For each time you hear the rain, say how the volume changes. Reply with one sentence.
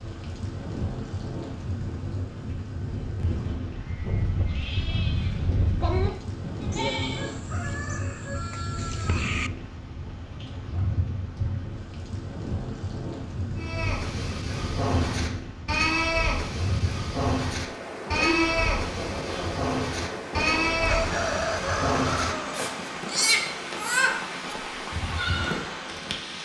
The rain can be heard from 0.0 to 26.3 s, at a steady volume.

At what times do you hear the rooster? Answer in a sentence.
You can hear the rooster from 6.7 to 9.5 s and from 20.9 to 22.5 s.